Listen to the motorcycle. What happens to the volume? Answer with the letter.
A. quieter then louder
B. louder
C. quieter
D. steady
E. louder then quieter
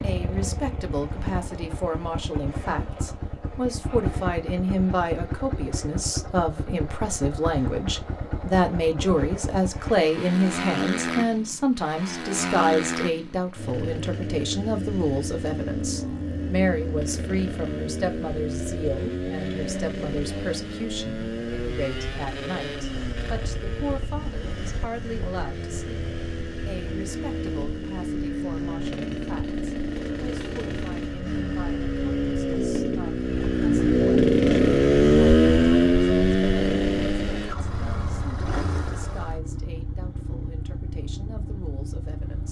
B.